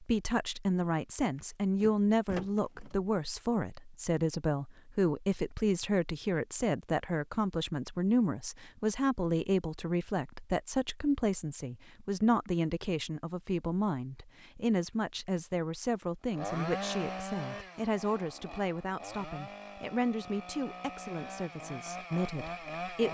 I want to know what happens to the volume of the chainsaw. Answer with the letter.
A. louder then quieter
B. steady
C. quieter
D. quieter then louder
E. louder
D.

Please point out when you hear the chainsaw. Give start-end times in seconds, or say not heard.
16.2-23.0.